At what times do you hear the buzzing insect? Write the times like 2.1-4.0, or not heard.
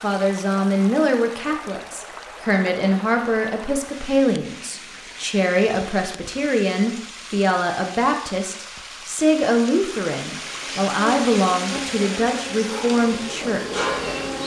10.4-14.4.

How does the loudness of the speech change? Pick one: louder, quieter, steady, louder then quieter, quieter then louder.
steady.